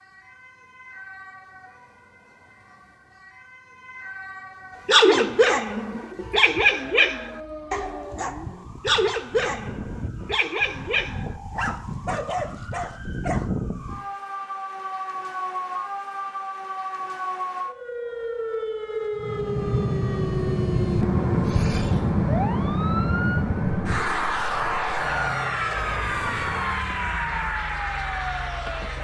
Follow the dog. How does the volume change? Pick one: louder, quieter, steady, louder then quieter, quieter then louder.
quieter.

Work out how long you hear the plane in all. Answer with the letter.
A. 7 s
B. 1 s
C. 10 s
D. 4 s
C.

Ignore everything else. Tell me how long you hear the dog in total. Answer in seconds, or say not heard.
9 s.